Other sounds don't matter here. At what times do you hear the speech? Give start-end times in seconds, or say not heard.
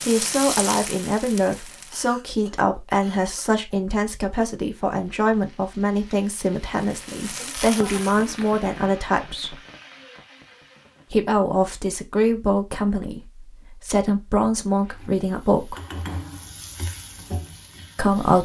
0.1-9.6, 11.1-15.8, 17.9-18.4.